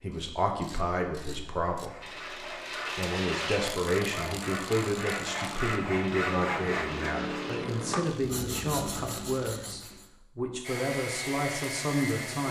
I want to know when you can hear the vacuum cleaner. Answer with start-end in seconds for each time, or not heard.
10.6-12.4.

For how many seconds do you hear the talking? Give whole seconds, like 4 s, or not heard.
12 s.